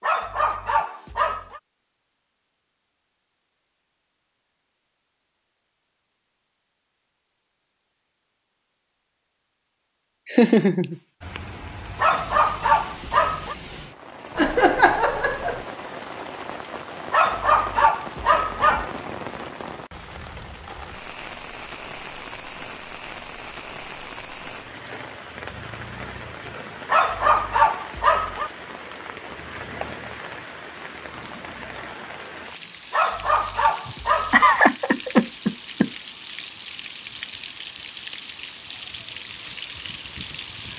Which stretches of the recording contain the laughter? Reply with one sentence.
You can hear the laughter from 10.2 to 11.4 s, from 14.3 to 15.7 s and from 33.9 to 35.9 s.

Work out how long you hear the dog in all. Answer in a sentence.
The dog can be heard for 8 seconds in total.